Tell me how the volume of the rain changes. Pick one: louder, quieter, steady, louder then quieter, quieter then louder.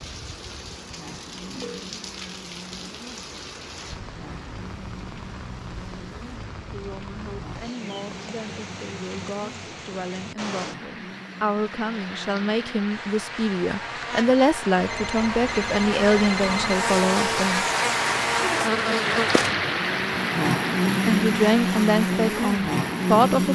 louder.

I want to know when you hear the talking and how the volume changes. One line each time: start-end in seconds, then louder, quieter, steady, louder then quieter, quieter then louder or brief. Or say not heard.
6.7-17.6 louder
21.1-23.5 brief.